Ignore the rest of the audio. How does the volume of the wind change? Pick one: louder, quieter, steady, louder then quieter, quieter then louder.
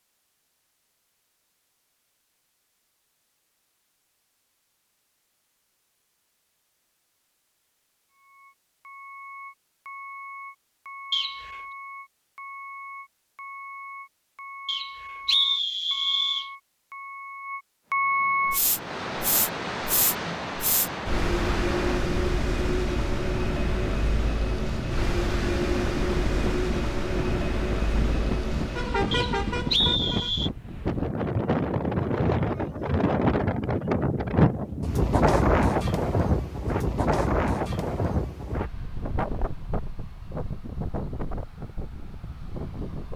louder then quieter.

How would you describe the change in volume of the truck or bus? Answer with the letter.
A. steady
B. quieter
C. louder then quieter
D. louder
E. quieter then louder
D.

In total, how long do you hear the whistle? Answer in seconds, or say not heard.
4 s.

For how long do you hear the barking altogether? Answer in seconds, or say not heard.
not heard.